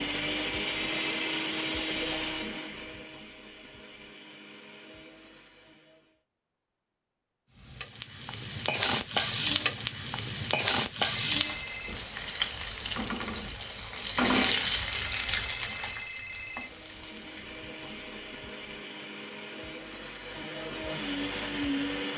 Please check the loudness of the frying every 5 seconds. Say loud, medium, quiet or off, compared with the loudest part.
off, loud, loud, medium, off.